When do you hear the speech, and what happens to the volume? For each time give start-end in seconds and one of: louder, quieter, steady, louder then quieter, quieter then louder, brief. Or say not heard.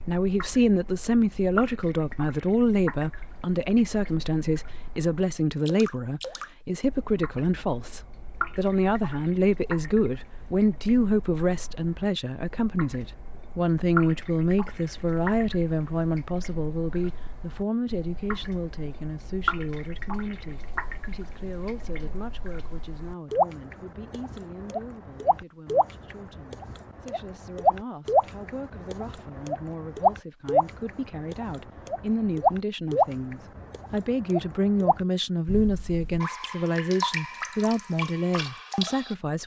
0.1-39.4 quieter then louder.